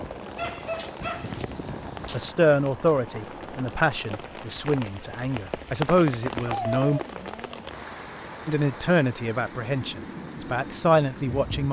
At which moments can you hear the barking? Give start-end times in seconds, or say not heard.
0.3-2.3, 6.5-7.7.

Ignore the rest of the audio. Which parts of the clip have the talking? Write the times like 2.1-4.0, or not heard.
2.1-7.0, 8.4-11.6.